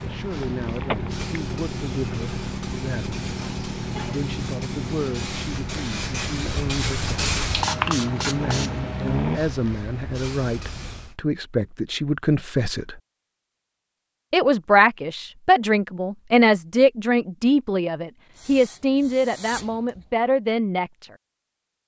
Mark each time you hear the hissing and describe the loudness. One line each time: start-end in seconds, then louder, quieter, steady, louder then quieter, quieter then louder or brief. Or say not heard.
0.0-11.2 louder then quieter
18.3-20.1 brief.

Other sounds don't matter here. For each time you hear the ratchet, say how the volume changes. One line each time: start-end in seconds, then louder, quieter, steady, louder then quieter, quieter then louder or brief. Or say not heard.
not heard.